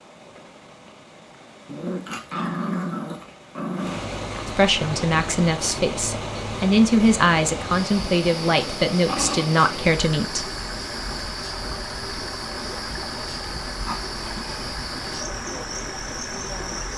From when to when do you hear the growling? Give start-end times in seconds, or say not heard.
1.6-4.1, 8.9-9.5, 13.8-14.5.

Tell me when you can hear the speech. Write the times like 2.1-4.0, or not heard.
4.5-10.4.